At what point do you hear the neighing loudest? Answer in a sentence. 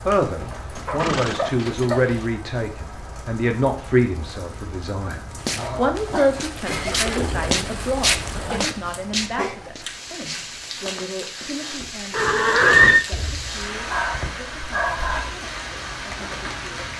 The loudest moment of the neighing is at 13 seconds.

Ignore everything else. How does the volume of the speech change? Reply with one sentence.
The volume of the speech goes down.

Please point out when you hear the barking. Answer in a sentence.
You can hear the barking from 0.5 to 2.1 s, from 5.5 to 7.0 s, from 8.9 to 10.9 s and from 13.1 to 15.3 s.